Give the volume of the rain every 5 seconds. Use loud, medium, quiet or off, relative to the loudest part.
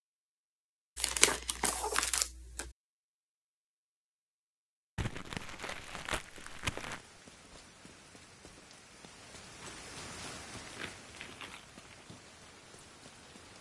off, loud, loud.